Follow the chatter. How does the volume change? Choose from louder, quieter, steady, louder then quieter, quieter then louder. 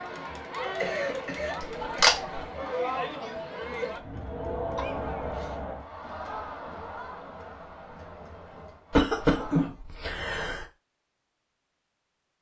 quieter.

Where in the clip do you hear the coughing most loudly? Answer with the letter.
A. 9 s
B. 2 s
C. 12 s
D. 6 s
A.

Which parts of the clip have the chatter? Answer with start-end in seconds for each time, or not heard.
0.0-9.7.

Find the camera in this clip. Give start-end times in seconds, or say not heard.
1.6-2.4.